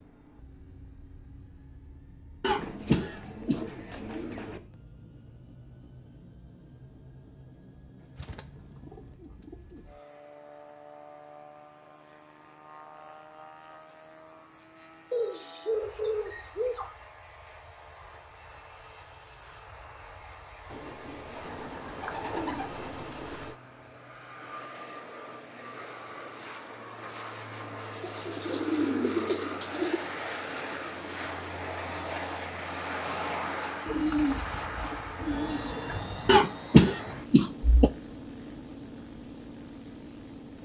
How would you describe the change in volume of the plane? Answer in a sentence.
The volume of the plane goes up.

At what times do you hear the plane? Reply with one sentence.
The plane can be heard from 0.0 to 40.6 s.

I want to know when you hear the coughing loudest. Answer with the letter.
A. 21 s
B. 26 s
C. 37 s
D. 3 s
C.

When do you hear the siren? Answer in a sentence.
You can't hear the siren here.